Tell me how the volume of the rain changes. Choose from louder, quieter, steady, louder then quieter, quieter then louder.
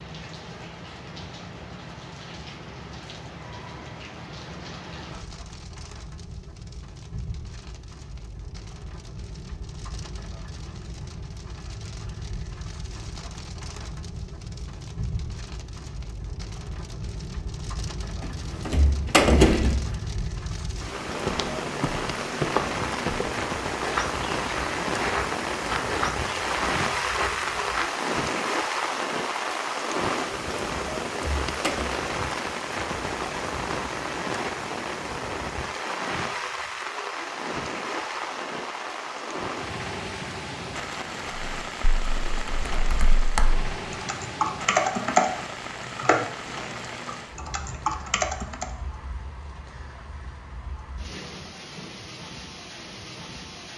louder then quieter.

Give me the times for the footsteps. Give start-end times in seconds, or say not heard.
20.9-27.9.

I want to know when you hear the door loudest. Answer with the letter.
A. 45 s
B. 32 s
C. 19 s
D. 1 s
C.